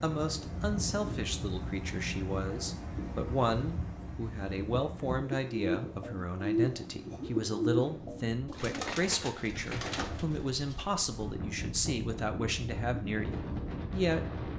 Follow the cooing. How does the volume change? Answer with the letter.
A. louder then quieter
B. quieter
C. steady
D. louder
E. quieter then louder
B.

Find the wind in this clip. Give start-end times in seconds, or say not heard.
0.0-14.5.